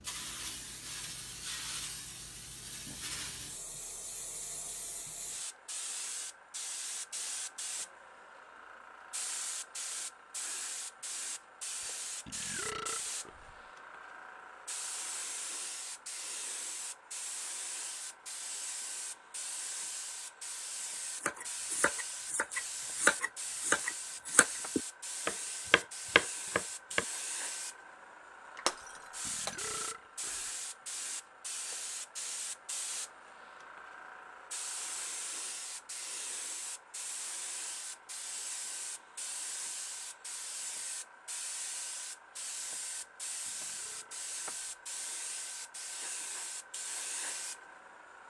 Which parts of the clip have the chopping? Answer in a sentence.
The chopping can be heard from 21.2 to 27.1 s.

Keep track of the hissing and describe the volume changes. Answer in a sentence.
The volume of the hissing stays about the same.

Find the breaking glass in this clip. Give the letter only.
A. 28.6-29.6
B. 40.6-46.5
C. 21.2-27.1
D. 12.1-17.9
A.